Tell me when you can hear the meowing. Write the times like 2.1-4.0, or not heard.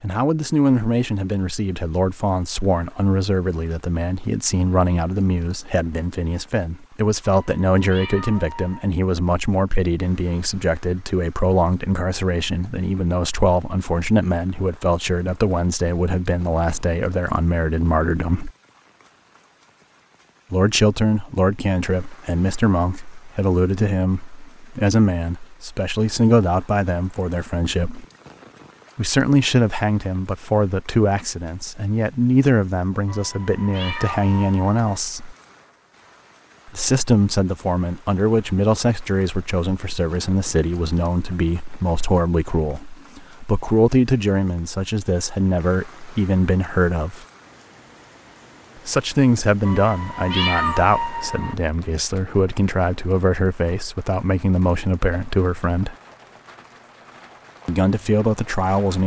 7.2-8.9, 33.0-34.8, 49.6-51.5.